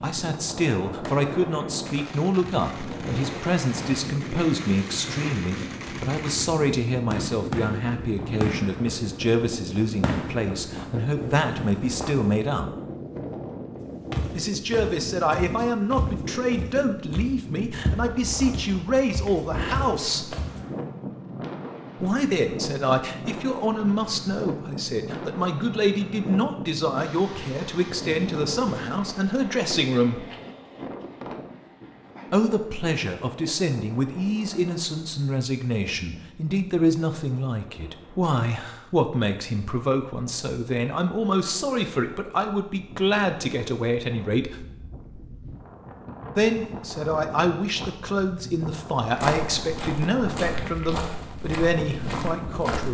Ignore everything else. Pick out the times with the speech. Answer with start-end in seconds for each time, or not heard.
0.0-12.7, 14.3-20.4, 22.0-30.2, 32.3-44.6, 46.4-52.8.